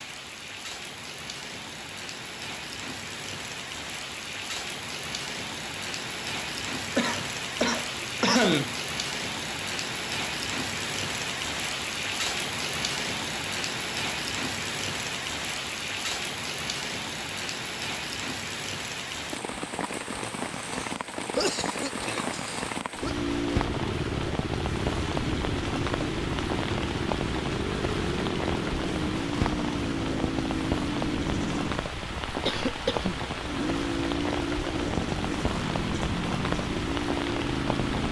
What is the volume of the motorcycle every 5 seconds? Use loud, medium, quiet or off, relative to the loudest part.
off, off, off, off, loud, loud, loud, loud.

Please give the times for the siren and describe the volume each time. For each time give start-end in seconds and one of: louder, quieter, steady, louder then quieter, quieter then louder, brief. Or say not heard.
not heard.